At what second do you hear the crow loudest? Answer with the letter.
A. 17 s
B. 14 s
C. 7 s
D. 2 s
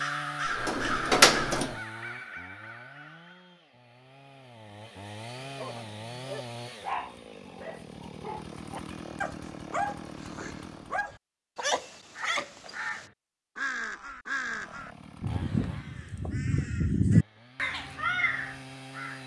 A.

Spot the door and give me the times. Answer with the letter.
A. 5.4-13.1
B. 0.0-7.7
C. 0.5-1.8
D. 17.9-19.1
C.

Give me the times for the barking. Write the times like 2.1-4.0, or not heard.
5.4-13.1.